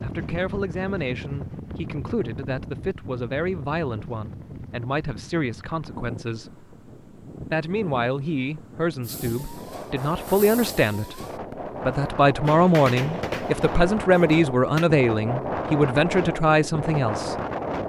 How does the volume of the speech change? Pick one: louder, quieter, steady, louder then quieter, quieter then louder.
louder.